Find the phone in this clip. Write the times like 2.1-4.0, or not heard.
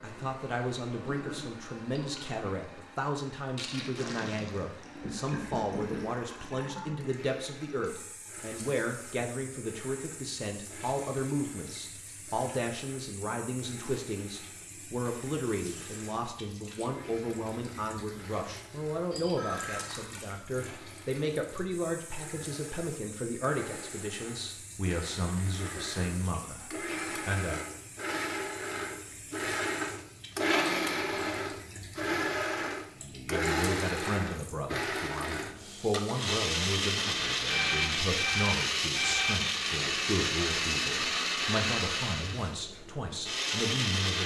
5.0-6.1, 19.1-19.8, 37.5-39.4.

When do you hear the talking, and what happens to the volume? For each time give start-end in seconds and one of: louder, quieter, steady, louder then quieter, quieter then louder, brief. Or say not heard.
0.0-27.6 steady
33.0-44.2 steady.